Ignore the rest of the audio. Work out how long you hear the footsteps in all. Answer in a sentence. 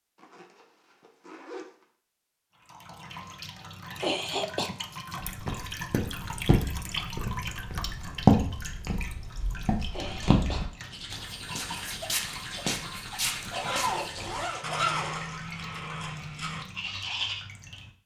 The footsteps can be heard for 9 seconds in total.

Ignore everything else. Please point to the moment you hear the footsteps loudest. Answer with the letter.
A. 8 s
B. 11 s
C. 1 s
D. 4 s
A.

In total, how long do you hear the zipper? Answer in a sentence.
The zipper can be heard for 3 seconds in total.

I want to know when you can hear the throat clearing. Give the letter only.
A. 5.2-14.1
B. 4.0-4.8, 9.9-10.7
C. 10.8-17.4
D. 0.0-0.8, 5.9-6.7
B.